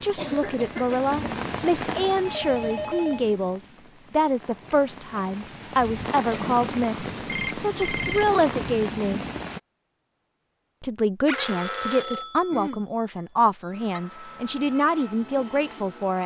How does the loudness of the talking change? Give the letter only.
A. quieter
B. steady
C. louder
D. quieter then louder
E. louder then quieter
B.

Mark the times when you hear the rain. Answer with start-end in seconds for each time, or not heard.
0.0-9.6.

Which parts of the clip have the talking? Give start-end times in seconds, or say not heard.
0.0-9.2, 10.8-16.2.